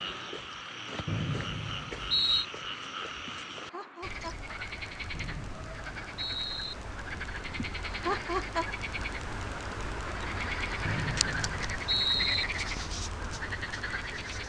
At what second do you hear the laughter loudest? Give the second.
8 s.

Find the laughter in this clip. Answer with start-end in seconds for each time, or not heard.
3.2-4.5, 7.5-8.7.